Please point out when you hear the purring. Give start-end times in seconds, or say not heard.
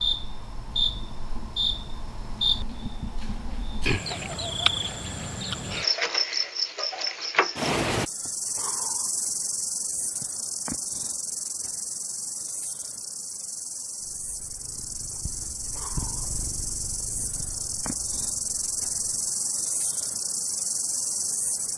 13.9-19.4.